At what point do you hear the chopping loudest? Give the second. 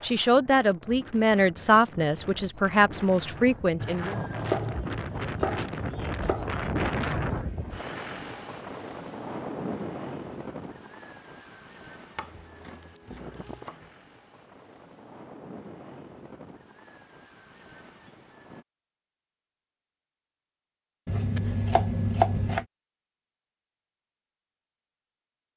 22 s.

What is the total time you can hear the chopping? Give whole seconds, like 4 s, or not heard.
6 s.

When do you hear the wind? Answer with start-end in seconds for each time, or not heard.
0.0-18.6.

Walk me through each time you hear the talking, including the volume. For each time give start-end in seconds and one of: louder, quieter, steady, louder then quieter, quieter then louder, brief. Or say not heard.
0.0-4.2 steady.